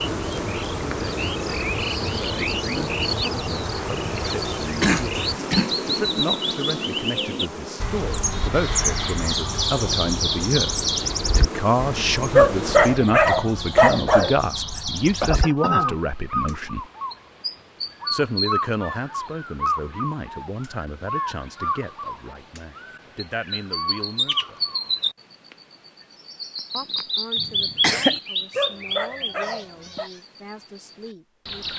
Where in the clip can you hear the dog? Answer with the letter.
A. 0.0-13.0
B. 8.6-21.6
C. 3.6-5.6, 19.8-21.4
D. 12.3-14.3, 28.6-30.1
D.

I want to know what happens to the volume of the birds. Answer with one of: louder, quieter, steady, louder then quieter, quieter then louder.
steady.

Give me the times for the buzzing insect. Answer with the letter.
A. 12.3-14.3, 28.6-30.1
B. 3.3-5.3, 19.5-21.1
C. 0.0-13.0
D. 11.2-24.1
C.